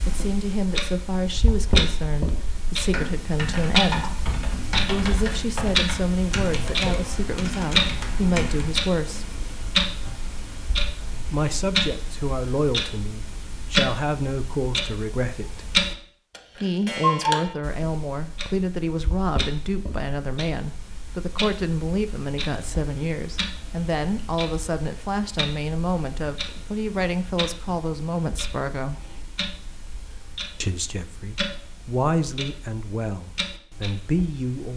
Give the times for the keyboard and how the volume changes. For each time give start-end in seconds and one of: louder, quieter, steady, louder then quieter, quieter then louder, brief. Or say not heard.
2.7-8.8 steady.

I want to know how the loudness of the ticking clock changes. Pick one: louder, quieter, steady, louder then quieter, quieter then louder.
quieter.